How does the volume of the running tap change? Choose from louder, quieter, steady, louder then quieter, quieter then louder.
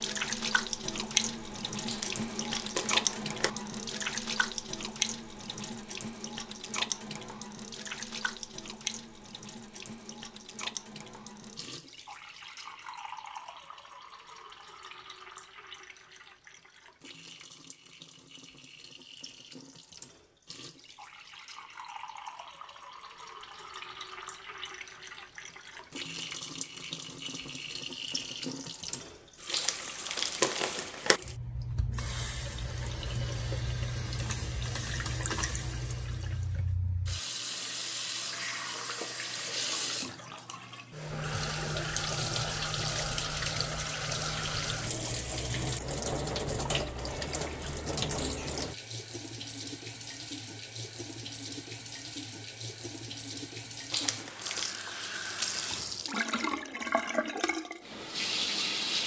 quieter then louder.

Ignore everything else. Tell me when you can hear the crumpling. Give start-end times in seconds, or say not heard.
1.9-3.5, 29.5-31.2, 53.9-54.8.